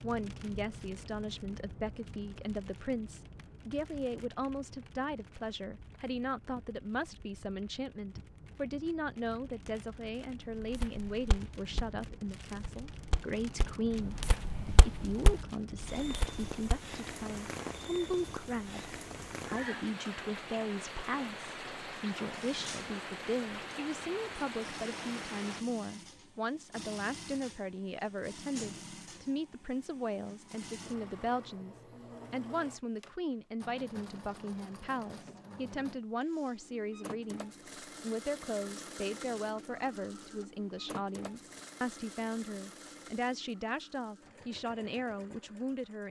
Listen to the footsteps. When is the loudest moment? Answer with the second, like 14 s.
15 s.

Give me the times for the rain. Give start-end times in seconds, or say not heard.
0.0-25.6.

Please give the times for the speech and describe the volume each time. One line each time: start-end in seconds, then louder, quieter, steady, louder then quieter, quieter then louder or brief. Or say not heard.
0.0-46.0 steady.